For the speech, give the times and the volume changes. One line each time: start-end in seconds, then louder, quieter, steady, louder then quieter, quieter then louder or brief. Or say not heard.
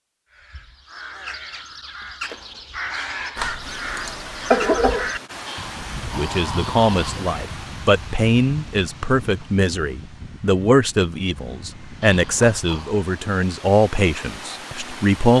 6.0-15.3 steady.